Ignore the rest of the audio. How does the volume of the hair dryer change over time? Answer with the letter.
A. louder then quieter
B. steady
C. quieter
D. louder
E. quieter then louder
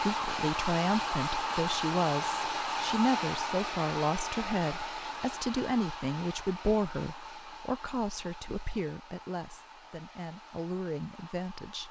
C.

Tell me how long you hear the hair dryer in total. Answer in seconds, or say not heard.
12 s.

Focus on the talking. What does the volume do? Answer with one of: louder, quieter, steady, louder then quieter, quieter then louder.
quieter.